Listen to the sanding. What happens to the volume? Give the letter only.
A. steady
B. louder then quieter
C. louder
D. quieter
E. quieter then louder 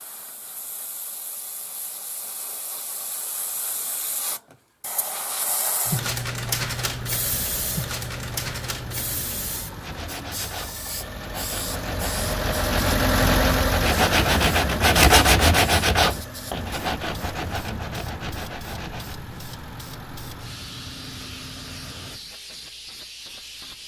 B.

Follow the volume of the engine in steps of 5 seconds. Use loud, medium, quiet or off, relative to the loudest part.
off, quiet, loud, quiet, quiet.